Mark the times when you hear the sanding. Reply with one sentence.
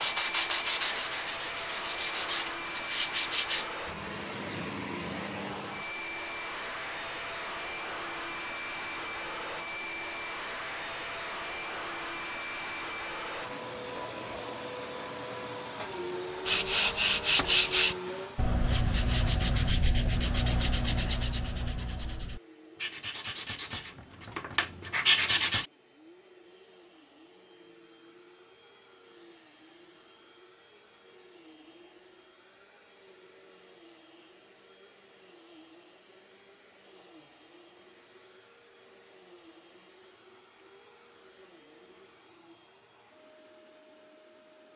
The sanding can be heard from 0.0 to 3.6 s and from 16.4 to 25.7 s.